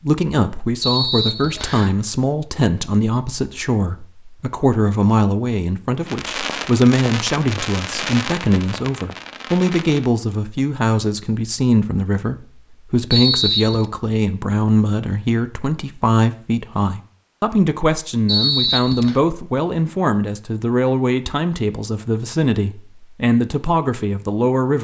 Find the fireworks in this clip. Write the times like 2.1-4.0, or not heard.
6.0-10.1.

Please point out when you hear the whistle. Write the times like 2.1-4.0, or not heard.
0.8-1.9, 13.1-13.8, 18.2-19.1.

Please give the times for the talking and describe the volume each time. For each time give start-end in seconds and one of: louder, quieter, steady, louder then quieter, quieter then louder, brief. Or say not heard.
0.0-24.8 steady.